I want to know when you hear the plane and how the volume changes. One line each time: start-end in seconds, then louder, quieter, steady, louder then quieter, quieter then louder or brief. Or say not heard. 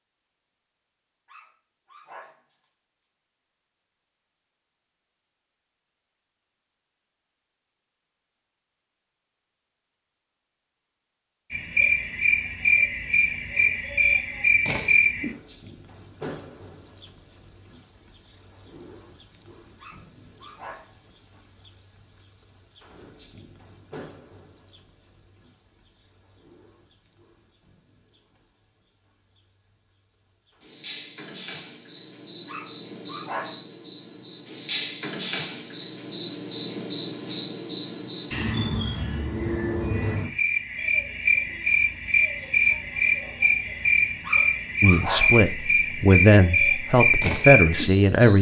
not heard.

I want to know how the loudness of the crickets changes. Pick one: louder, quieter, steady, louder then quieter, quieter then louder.
quieter then louder.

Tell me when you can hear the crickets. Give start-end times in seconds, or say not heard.
11.5-48.3.